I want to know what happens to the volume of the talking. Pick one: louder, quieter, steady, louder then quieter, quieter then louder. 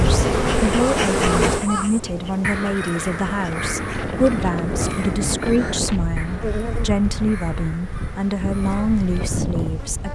steady.